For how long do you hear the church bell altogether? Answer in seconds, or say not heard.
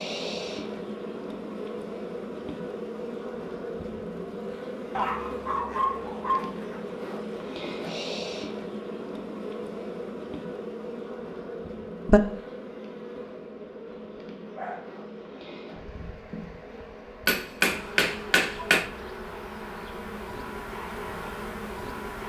not heard.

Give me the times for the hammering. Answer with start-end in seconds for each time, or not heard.
17.2-18.9.